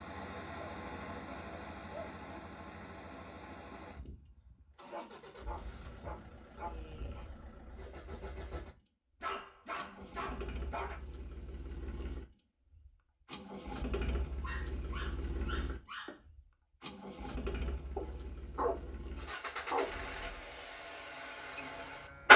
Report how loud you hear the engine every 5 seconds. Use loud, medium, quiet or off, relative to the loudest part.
quiet, quiet, quiet, quiet, loud.